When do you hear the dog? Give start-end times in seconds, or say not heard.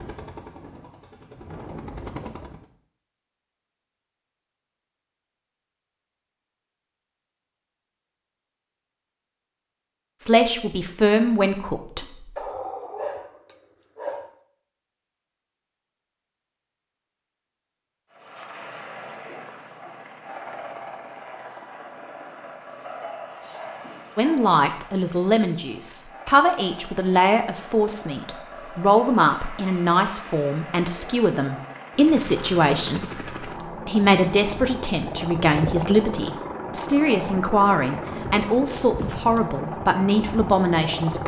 12.3-14.3, 22.8-24.6.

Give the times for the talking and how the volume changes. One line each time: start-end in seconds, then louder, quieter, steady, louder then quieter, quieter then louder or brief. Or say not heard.
10.2-12.2 brief
24.1-41.2 steady.